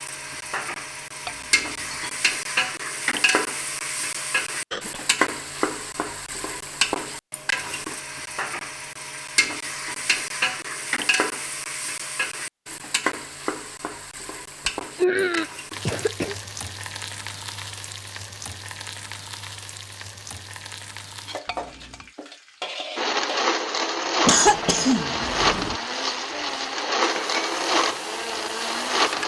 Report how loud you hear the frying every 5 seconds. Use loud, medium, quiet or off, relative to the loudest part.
loud, loud, loud, medium, medium, medium.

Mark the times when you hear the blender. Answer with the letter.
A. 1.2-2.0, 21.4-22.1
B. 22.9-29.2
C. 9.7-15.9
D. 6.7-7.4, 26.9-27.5
B.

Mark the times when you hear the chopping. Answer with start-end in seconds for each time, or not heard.
not heard.